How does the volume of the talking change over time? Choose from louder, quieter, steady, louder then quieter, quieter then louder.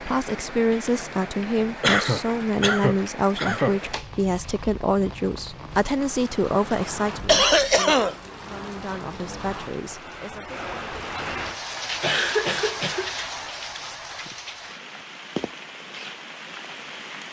quieter.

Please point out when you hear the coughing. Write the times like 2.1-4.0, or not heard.
1.8-3.8, 7.2-8.2, 12.0-13.1.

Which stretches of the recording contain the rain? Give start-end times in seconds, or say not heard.
0.0-17.2.